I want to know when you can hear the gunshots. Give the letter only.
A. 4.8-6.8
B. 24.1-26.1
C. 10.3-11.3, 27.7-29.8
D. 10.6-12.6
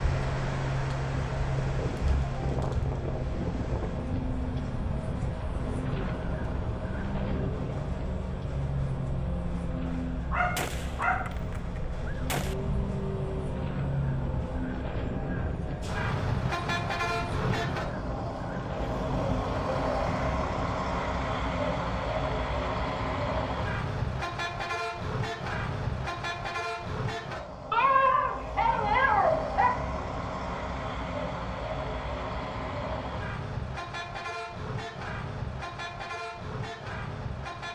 D.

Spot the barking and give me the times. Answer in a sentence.
The barking can be heard from 10.3 to 11.3 s and from 27.7 to 29.8 s.